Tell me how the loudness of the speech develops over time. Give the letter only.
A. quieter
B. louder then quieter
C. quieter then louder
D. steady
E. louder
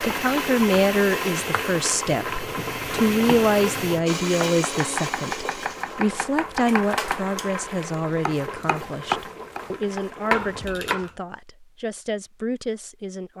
A.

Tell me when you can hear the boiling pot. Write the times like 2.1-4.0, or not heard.
0.0-10.8.